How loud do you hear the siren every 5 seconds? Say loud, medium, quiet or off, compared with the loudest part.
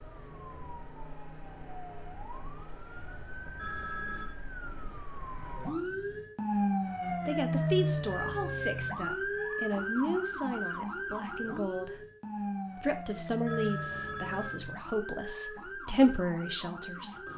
quiet, loud, medium, medium.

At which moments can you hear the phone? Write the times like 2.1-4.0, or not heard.
3.5-4.3, 13.4-14.6.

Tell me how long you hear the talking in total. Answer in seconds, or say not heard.
9 s.